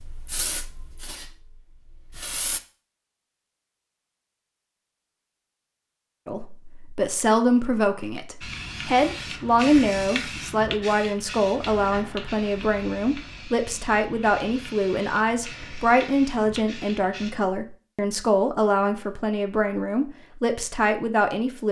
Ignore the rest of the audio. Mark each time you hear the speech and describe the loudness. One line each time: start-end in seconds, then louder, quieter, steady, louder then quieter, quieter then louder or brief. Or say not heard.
6.2-21.6 steady.